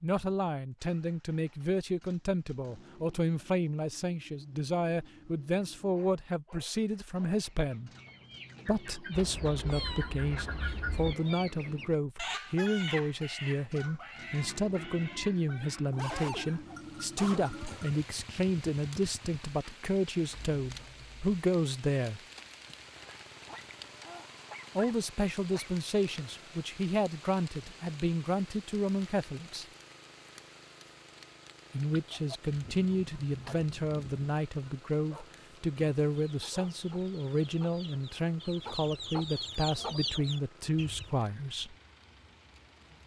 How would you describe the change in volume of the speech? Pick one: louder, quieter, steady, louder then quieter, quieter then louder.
steady.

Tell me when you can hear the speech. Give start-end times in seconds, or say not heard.
0.0-7.9, 8.7-22.2, 24.8-29.6, 31.7-41.8.